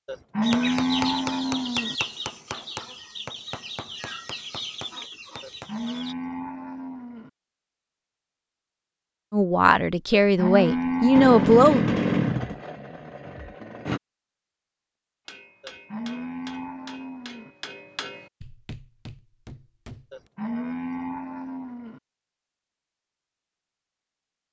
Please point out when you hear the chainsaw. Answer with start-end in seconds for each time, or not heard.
11.1-14.0.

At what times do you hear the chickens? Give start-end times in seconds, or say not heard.
0.4-6.2.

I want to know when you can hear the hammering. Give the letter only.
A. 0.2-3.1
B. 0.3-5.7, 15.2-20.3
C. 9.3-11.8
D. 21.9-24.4
B.